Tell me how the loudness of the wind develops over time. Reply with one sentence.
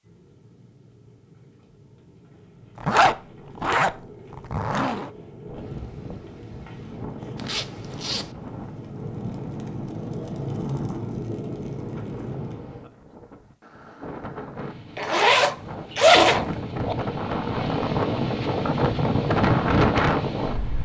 The loudness of the wind goes up.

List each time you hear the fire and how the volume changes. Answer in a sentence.
You can hear the fire from 0.0 to 12.6 s, getting louder.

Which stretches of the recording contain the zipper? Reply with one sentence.
The zipper can be heard from 2.8 to 3.9 s, from 4.5 to 5.1 s, from 7.3 to 8.3 s and from 14.9 to 16.9 s.